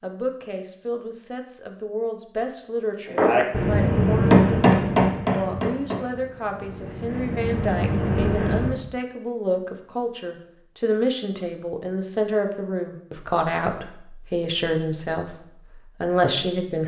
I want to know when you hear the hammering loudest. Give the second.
4 s.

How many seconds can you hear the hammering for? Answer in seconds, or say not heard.
6 s.